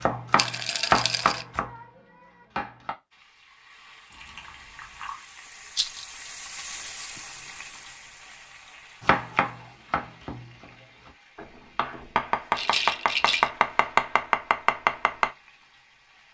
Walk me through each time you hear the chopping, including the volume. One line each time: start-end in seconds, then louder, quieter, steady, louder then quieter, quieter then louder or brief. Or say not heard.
0.0-3.0 brief
9.0-15.3 quieter then louder.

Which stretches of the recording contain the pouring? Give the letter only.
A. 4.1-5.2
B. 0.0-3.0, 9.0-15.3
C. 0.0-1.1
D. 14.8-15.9
A.